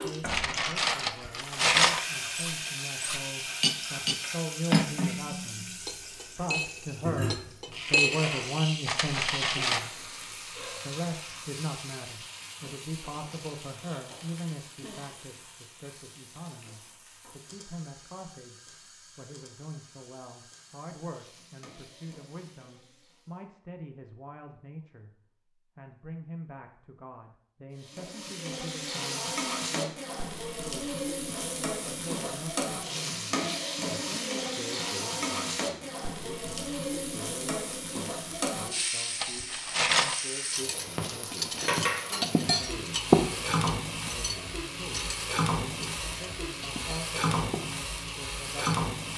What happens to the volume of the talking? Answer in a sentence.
The loudness of the talking goes down.